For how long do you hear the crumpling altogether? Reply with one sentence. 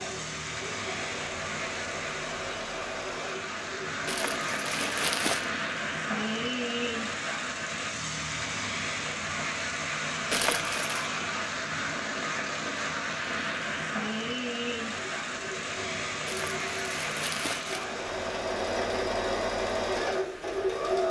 You can hear the crumpling for 4 seconds altogether.